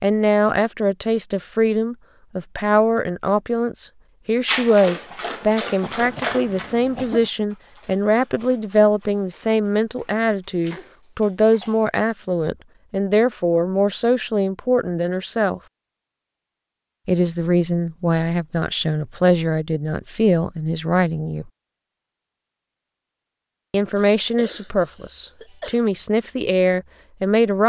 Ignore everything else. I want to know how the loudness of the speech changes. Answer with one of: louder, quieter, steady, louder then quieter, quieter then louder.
steady.